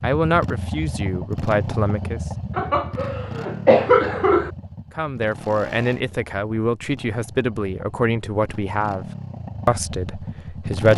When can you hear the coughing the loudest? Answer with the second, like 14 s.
4 s.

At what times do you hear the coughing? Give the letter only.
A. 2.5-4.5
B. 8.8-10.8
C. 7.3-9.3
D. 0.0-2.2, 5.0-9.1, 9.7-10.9
A.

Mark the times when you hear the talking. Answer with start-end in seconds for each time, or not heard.
0.0-2.2, 5.0-9.1, 9.7-10.9.